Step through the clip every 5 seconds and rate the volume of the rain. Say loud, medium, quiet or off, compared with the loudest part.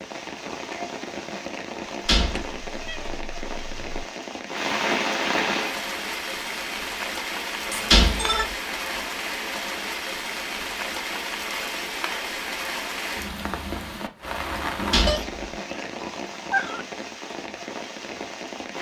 loud, loud, loud, medium.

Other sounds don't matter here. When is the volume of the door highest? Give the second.
8 s.